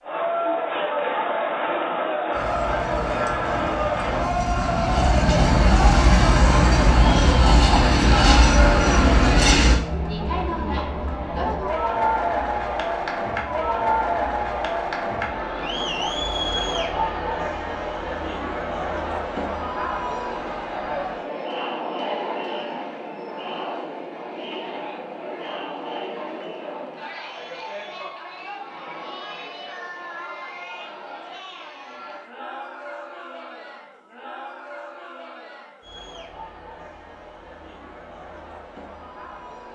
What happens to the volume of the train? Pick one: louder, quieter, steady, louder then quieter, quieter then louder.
louder.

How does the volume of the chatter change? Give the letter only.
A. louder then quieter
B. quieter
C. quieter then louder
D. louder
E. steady
B.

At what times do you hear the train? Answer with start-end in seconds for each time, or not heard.
2.3-9.8.